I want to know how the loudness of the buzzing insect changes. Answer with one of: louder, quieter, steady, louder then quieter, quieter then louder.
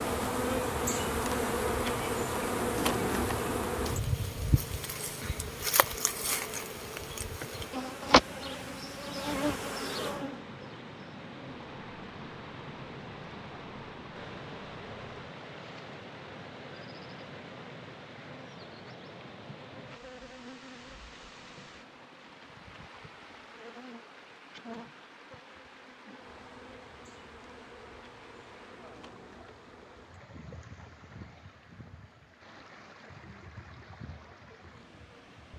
quieter.